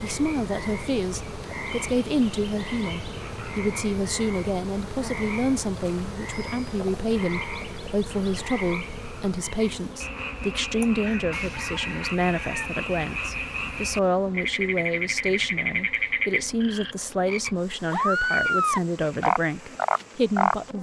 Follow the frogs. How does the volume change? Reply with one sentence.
The volume of the frogs goes up.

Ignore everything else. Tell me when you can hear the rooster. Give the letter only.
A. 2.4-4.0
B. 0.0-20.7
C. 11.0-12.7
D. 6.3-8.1
C.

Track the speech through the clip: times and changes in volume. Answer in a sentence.
You can hear the speech from 0.0 to 20.7 s, at a steady volume.